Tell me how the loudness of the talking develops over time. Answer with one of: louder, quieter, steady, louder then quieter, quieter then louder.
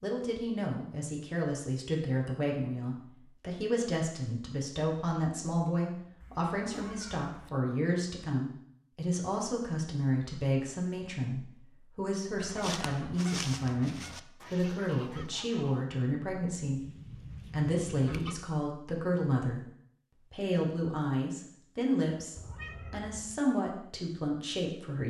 steady.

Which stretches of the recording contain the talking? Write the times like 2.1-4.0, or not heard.
0.0-19.6, 20.3-25.0.